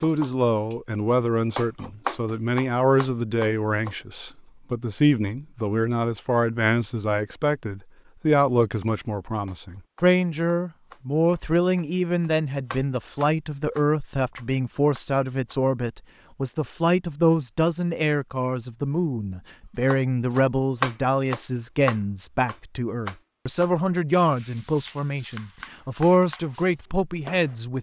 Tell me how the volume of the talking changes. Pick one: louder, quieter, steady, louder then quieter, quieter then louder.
steady.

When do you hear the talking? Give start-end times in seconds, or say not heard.
0.0-27.7.